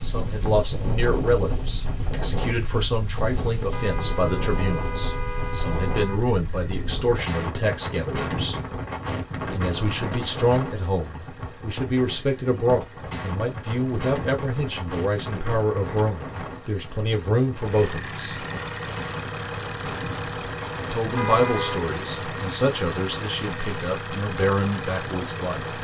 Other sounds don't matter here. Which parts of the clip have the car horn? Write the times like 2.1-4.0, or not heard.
3.7-6.2, 21.1-21.9.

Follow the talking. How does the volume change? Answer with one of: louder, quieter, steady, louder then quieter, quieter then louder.
steady.